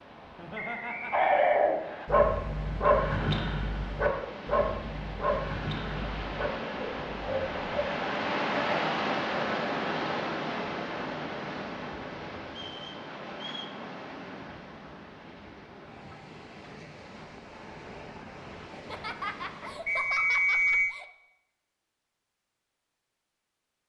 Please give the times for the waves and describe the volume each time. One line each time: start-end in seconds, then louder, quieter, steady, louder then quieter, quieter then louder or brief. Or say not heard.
0.0-20.1 louder then quieter.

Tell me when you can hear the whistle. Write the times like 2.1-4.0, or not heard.
0.6-2.1, 12.6-13.8, 19.9-20.9.